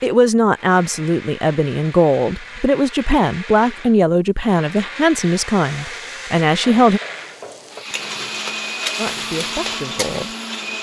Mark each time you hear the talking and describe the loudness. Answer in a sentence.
The talking can be heard from 0.0 to 7.0 s, at a steady volume; and briefly from 8.9 to 10.3 s.